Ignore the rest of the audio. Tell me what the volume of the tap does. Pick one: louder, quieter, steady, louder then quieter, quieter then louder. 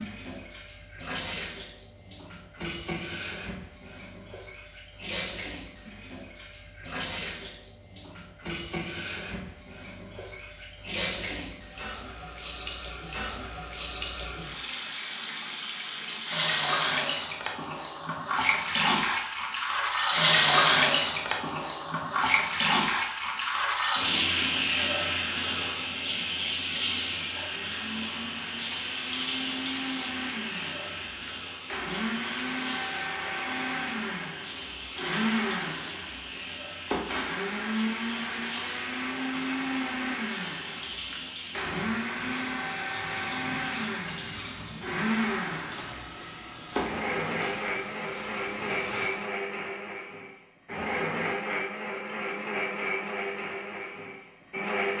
louder then quieter.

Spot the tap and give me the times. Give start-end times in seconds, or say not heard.
0.0-49.4.